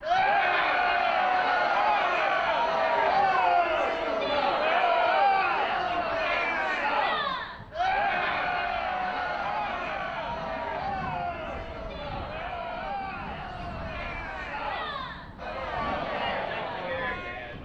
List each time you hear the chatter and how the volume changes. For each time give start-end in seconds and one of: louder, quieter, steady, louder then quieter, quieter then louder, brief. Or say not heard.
0.0-17.5 quieter.